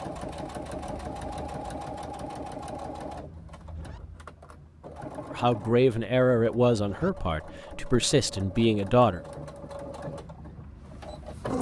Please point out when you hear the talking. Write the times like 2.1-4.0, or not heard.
5.3-9.2.